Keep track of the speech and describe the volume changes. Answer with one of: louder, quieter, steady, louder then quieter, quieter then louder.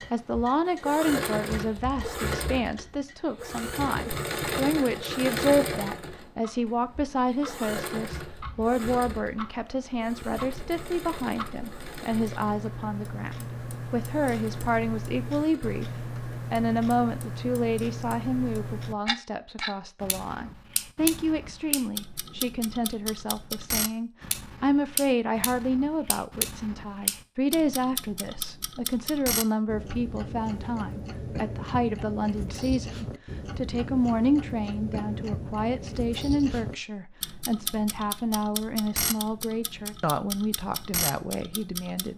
steady.